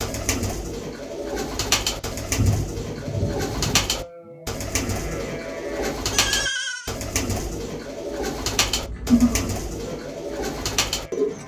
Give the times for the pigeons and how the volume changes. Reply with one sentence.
You can hear the pigeons from 0.0 to 11.4 s, at a steady volume.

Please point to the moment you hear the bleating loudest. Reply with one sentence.
The loudest moment of the bleating is at 9 seconds.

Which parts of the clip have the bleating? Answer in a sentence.
You can hear the bleating from 2.3 to 7.0 s and from 8.7 to 11.4 s.